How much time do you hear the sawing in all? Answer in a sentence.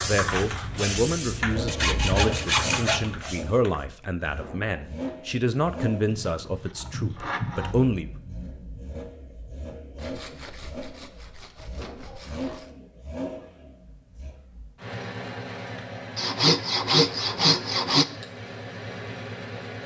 The sawing can be heard for 8 seconds in total.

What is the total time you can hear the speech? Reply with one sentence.
The speech can be heard for 8 seconds in total.